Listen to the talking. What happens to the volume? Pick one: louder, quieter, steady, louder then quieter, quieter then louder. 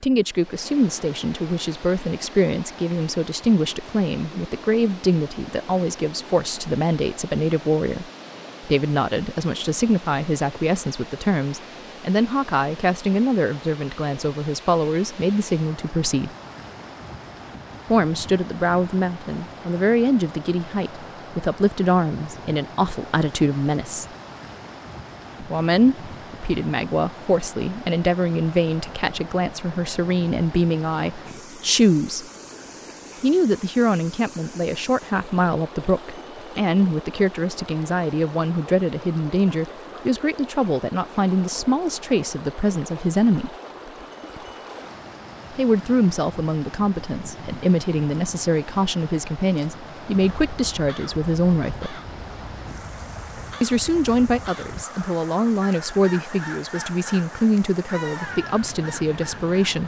steady.